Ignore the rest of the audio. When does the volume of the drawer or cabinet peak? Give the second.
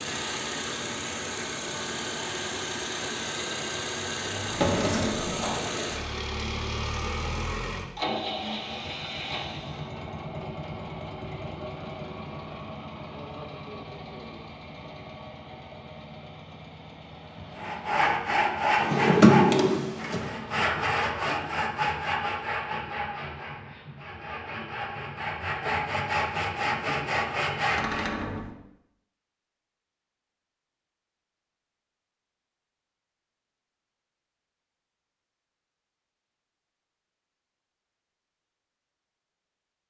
19 s.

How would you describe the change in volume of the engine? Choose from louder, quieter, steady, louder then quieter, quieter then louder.
quieter.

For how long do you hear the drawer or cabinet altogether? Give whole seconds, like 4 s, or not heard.
3 s.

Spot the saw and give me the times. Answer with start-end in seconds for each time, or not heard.
17.5-28.2.